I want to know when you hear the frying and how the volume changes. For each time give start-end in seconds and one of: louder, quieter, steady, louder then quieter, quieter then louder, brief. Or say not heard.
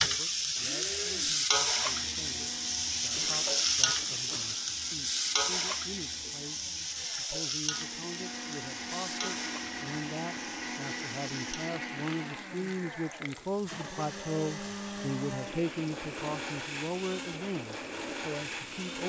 0.0-19.0 quieter.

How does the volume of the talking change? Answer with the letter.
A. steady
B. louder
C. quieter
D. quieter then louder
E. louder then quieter
B.